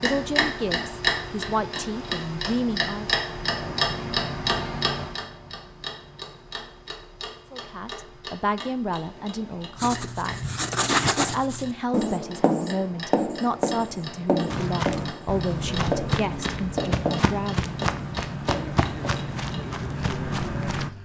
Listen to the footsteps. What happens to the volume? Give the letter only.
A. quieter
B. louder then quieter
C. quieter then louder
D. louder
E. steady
E.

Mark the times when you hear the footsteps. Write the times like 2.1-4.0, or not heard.
14.4-20.9.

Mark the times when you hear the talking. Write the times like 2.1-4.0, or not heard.
0.0-3.2, 7.5-10.4, 11.2-17.7.